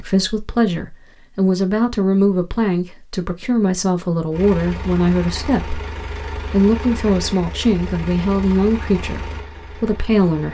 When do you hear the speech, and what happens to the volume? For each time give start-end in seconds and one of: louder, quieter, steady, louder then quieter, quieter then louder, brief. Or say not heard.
0.0-10.5 steady.